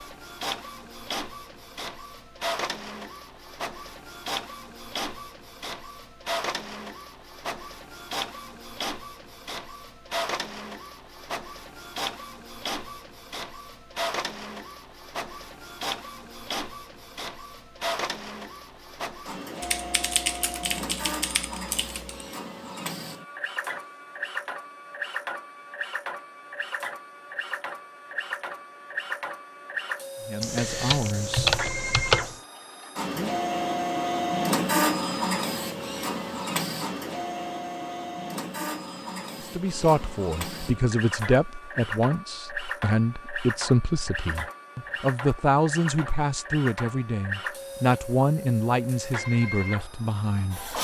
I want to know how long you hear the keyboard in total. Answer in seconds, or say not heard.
5 s.